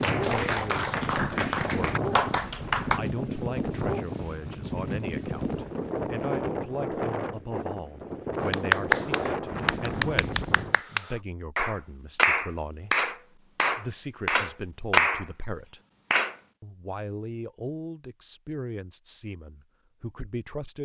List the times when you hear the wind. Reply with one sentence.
You can hear the wind from 0.0 to 10.8 s.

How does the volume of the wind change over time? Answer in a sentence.
The loudness of the wind stays about the same.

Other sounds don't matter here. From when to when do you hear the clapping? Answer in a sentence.
You can hear the clapping from 0.0 to 3.0 s and from 8.5 to 16.4 s.